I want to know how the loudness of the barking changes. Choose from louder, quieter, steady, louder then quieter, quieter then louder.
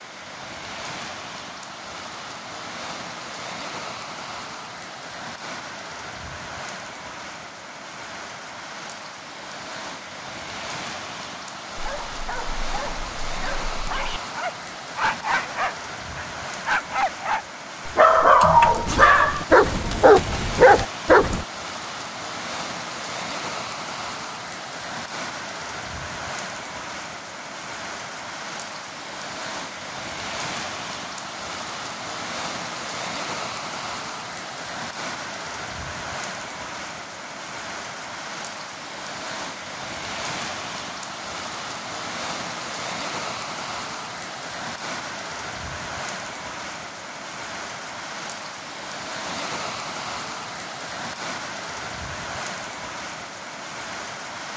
louder.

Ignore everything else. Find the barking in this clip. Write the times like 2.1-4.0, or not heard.
11.8-21.4.